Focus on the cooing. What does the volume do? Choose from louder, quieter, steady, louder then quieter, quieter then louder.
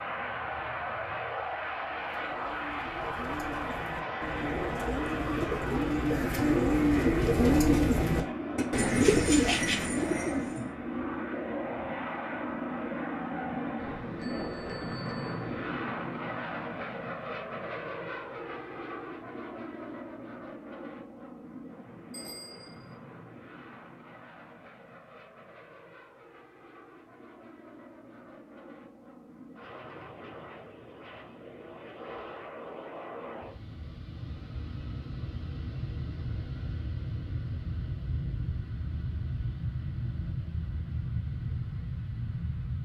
louder.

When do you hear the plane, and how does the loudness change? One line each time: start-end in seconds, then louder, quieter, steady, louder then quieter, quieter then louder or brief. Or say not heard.
0.0-42.8 quieter then louder.